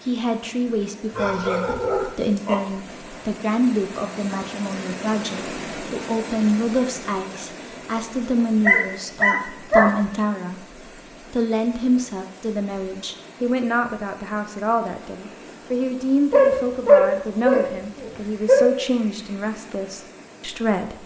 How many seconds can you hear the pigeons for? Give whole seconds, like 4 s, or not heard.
not heard.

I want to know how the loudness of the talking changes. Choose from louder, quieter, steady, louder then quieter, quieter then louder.
steady.